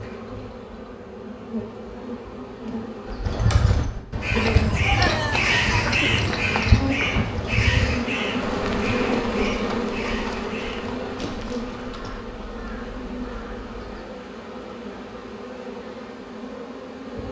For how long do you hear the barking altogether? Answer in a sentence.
You can hear the barking for 2 seconds altogether.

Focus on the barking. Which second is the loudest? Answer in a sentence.
The volume of the barking peaks at 5 seconds.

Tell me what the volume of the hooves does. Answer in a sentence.
The volume of the hooves goes down.